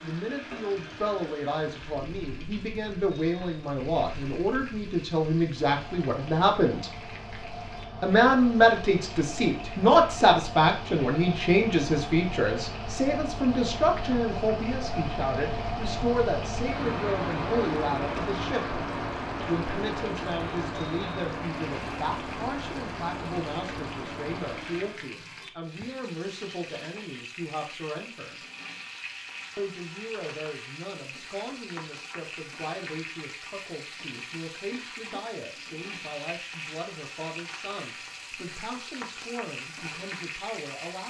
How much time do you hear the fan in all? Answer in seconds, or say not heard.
25 s.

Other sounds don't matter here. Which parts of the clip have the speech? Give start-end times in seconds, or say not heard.
0.0-6.9, 8.0-18.8, 19.4-28.4, 29.6-41.0.